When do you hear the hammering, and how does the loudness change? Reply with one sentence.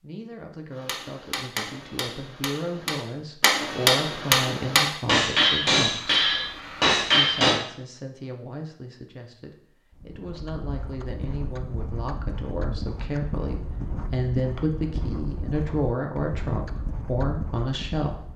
The hammering can be heard from 0.8 to 7.5 s, getting louder.